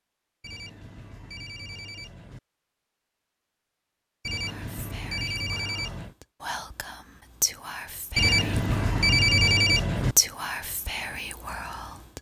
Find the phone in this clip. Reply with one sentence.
You can hear the phone from 0.4 to 2.4 s, from 4.2 to 6.2 s and from 8.2 to 10.2 s.